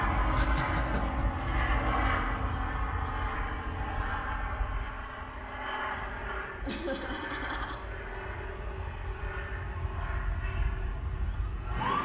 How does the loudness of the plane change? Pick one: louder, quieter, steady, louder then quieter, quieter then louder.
quieter.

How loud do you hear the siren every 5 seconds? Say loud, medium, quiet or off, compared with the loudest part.
medium, quiet, loud.